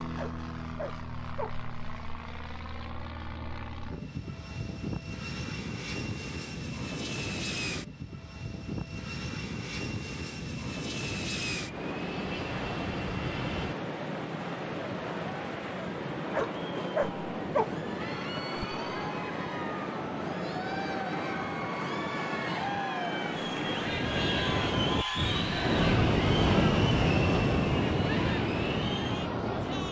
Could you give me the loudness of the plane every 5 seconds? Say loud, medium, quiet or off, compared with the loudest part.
loud, loud, loud, off, off, off.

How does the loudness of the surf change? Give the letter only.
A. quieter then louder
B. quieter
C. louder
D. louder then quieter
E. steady
C.